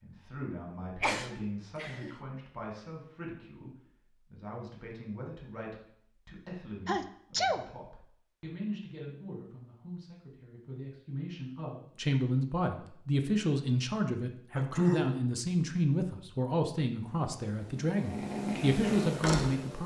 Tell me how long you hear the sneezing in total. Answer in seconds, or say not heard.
3 s.